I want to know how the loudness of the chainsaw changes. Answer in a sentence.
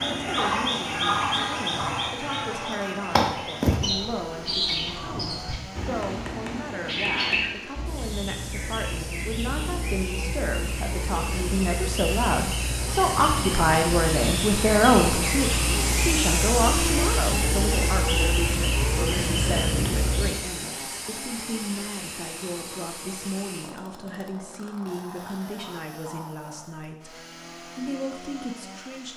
The volume of the chainsaw goes up, then down.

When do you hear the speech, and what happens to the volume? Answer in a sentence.
You can hear the speech from 0.2 to 29.1 s, getting louder then quieter.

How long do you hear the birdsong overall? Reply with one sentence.
The birdsong can be heard for 20 seconds in total.